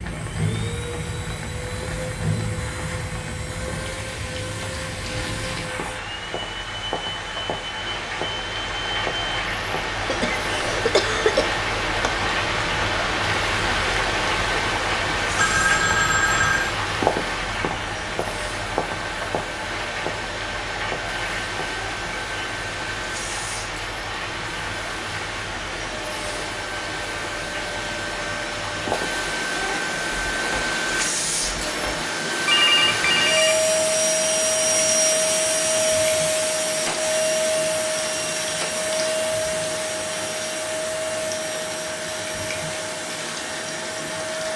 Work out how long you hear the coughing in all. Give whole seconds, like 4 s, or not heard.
2 s.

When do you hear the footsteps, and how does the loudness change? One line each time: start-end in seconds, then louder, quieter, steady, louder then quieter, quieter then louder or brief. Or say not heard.
not heard.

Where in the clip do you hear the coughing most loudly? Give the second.
11 s.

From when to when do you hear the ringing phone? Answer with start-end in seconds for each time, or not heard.
15.3-16.8, 32.5-33.6.